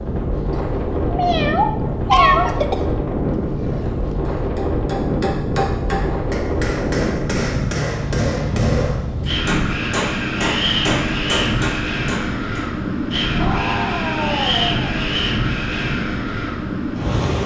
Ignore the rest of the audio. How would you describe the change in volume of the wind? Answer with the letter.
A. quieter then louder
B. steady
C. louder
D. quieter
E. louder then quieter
B.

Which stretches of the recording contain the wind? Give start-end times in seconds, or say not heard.
0.0-17.4.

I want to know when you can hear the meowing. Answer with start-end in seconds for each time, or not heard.
0.6-2.5, 13.4-15.0.